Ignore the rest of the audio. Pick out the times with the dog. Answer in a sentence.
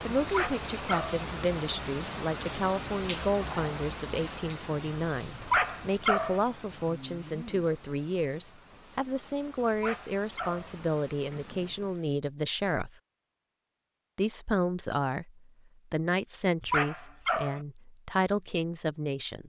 The dog can be heard from 0.2 to 1.2 s, from 5.4 to 6.4 s, from 9.7 to 10.8 s and from 16.6 to 17.6 s.